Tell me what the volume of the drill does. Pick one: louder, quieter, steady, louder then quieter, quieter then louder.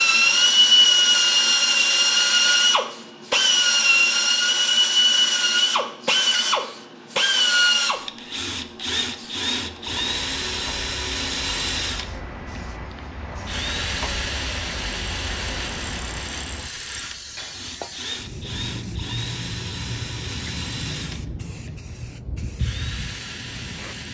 quieter.